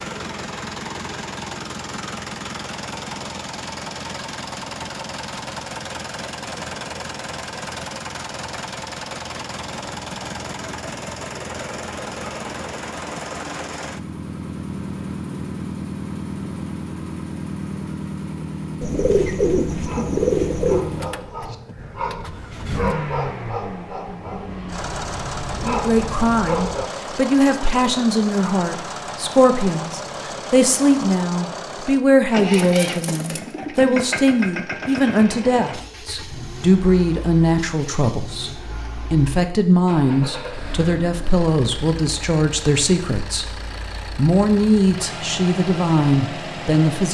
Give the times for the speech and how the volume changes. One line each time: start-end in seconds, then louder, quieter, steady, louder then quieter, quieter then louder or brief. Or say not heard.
25.6-47.0 steady.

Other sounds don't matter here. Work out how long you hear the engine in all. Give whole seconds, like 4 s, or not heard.
47 s.